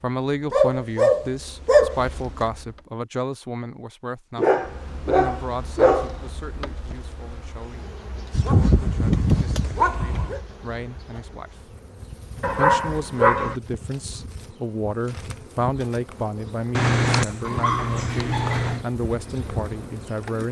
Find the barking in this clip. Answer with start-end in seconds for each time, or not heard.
0.5-2.5, 4.3-6.2, 8.3-10.4, 12.4-13.6, 16.7-18.9.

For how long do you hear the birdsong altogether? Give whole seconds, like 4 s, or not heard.
not heard.